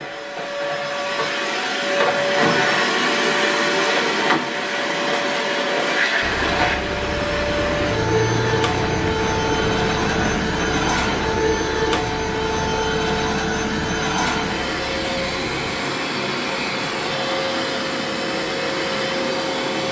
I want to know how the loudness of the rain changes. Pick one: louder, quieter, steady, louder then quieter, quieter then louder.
quieter.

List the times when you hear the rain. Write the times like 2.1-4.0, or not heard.
6.2-19.8.